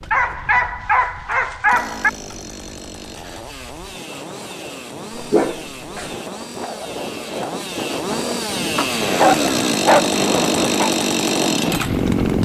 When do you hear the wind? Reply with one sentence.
The wind can be heard from 0.0 to 12.4 s.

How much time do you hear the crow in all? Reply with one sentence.
The crow can't be heard in this clip.